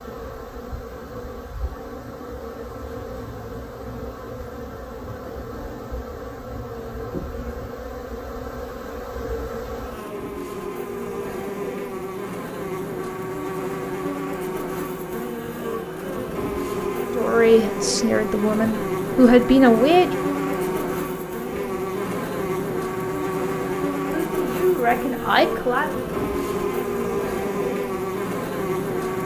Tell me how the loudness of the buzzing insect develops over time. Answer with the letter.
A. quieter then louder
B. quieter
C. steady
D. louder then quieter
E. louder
E.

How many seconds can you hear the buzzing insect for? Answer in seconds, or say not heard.
29 s.